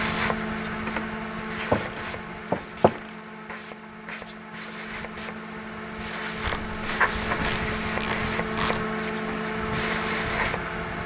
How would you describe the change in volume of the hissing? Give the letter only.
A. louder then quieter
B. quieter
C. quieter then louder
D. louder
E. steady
C.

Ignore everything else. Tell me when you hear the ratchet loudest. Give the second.
2 s.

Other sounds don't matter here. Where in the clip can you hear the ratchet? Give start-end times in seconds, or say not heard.
1.7-3.2, 6.4-8.8.